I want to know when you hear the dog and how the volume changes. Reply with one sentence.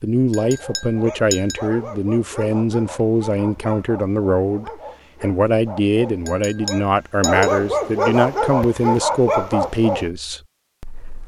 The dog can be heard from 0.3 to 10.1 s, getting louder.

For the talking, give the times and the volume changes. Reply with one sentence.
The talking can be heard from 0.0 to 11.2 s, at a steady volume.